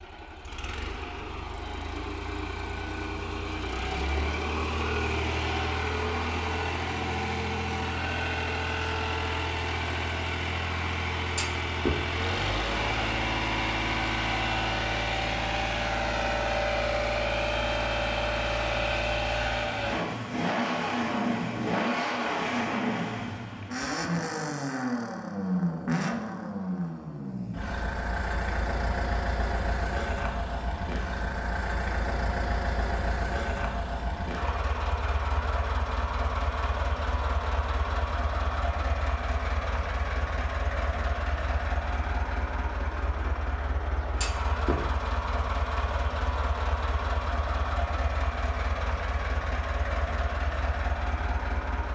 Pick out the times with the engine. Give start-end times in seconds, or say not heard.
0.0-51.8.